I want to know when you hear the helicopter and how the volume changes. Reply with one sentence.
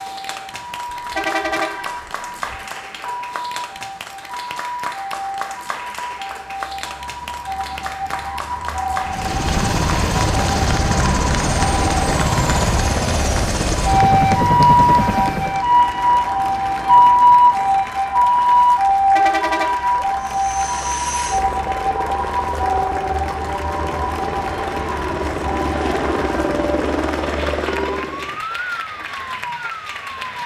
You can hear the helicopter from 9.0 to 15.7 s, at a steady volume; and from 20.2 to 28.4 s, getting louder.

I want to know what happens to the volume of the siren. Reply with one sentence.
The volume of the siren goes up, then down.